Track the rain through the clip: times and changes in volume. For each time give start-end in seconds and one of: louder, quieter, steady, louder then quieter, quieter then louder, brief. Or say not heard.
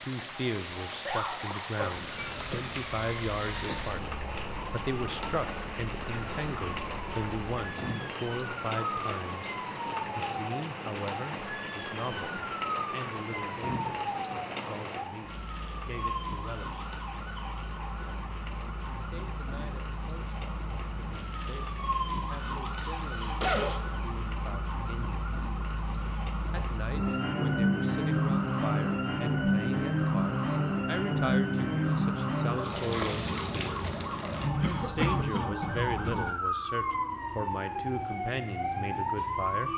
0.0-26.9 quieter.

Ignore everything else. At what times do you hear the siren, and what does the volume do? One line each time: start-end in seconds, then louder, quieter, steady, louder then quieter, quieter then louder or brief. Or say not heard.
0.1-39.7 louder.